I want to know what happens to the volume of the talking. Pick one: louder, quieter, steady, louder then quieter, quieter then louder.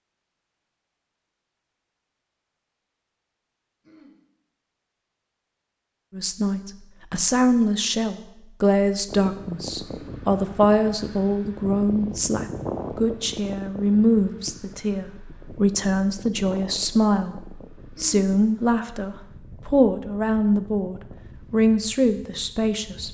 steady.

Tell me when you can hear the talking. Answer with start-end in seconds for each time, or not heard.
6.1-23.0.